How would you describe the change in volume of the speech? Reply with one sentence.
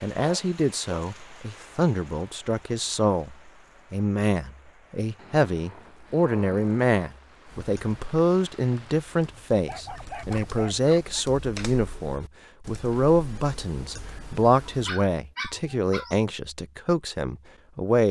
The volume of the speech stays about the same.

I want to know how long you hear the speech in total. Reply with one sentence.
You can hear the speech for 18 seconds altogether.